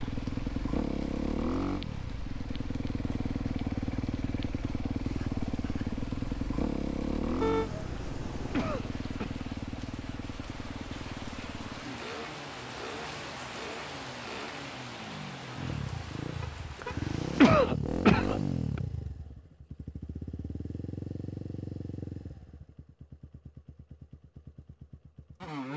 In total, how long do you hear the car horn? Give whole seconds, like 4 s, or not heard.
2 s.